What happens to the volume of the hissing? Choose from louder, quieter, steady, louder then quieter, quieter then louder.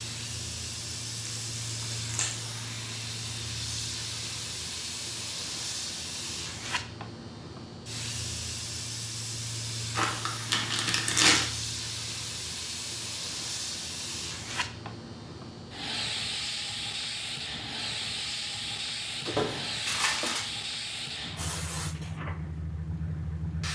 steady.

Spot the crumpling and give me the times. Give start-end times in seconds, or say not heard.
1.2-2.4, 9.9-11.4, 19.2-20.4.